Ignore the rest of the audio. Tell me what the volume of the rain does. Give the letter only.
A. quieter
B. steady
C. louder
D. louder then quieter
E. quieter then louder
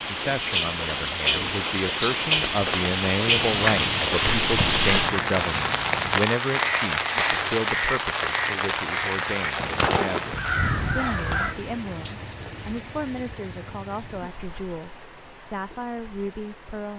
A.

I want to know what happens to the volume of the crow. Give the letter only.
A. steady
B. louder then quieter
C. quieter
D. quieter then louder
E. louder
E.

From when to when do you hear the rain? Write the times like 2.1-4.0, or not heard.
0.0-16.9.